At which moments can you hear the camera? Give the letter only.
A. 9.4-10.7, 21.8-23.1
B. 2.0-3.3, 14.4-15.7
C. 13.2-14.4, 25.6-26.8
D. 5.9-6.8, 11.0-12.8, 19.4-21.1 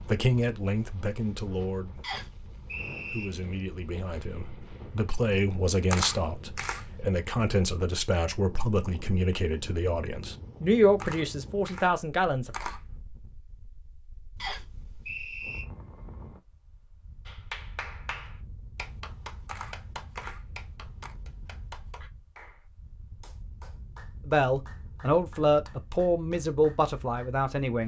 D.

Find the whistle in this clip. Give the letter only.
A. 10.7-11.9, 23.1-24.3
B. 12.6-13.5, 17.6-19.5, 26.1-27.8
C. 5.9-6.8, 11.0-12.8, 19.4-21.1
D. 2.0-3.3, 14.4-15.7
D.